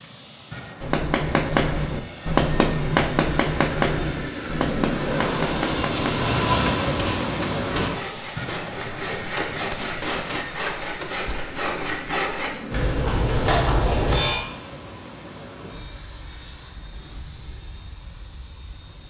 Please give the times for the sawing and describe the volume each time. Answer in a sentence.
You can hear the sawing from 7.8 to 14.4 s, getting louder.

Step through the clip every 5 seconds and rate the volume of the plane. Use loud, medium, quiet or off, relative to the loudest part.
medium, loud, medium, quiet.